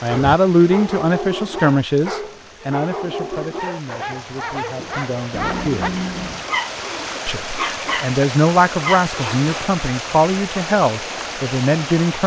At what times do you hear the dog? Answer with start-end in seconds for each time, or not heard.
0.1-9.4.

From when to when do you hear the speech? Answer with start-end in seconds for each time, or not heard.
0.0-6.0, 7.2-12.2.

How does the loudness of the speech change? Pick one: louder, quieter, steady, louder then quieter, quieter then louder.
quieter then louder.